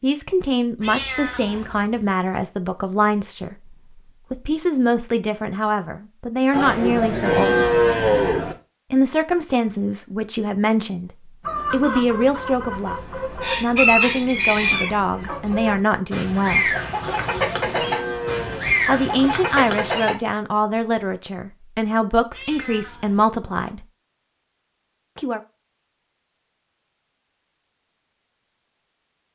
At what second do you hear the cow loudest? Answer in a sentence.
The loudest moment of the cow is at 8 seconds.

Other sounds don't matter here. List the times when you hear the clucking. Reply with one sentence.
The clucking can be heard from 11.4 to 20.1 s.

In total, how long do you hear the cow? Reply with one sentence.
The cow can be heard for 4 seconds in total.